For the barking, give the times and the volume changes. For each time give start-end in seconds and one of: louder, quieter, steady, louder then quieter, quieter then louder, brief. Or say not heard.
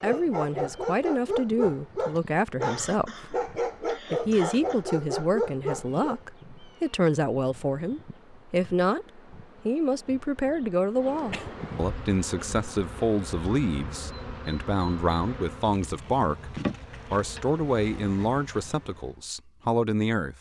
0.0-6.2 steady.